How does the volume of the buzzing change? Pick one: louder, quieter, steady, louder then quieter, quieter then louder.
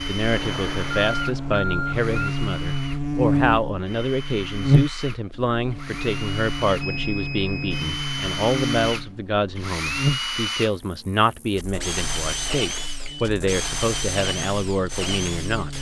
quieter.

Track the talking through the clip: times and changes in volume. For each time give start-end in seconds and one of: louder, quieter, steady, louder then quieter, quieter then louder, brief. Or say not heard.
0.0-15.7 steady.